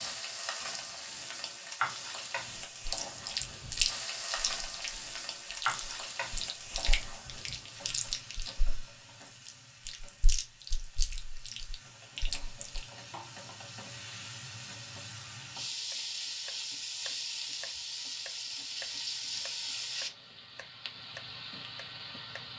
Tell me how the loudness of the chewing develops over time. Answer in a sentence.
The loudness of the chewing goes down.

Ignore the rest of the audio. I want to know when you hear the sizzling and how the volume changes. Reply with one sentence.
You can hear the sizzling from 0.0 to 22.5 s, getting quieter then louder.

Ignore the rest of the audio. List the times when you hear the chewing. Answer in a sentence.
You can hear the chewing from 2.9 to 12.8 s.